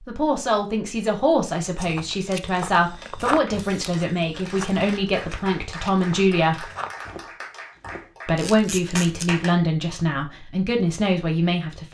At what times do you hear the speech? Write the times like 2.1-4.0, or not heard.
0.1-6.7, 8.2-11.8.